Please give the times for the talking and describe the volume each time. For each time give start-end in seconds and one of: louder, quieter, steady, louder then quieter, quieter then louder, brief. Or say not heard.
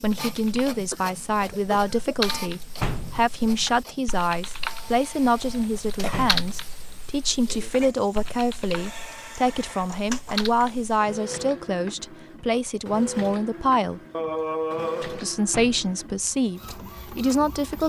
0.0-14.0 steady
15.0-17.8 brief.